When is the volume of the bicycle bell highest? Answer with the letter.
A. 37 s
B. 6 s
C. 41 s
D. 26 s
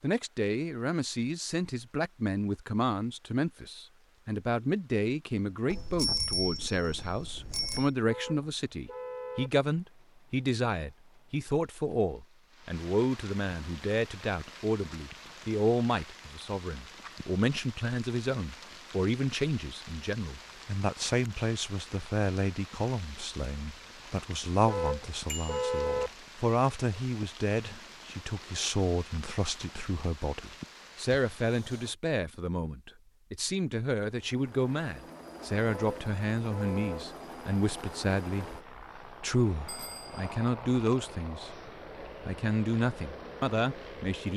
B.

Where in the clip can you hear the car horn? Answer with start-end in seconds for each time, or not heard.
8.1-9.5, 24.6-26.1, 35.6-37.0.